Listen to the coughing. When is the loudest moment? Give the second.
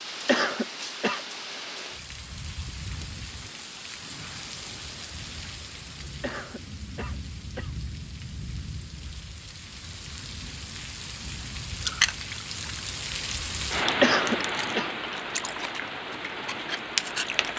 14 s.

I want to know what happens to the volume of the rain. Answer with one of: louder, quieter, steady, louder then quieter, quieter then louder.
louder.